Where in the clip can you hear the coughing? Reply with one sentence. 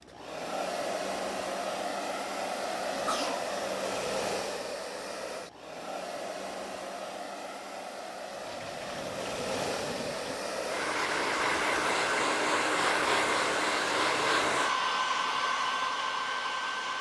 The coughing can be heard from 2.9 to 3.5 s.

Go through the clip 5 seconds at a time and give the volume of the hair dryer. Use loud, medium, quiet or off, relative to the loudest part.
medium, medium, loud, loud.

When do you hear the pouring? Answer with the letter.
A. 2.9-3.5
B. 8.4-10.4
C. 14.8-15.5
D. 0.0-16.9
B.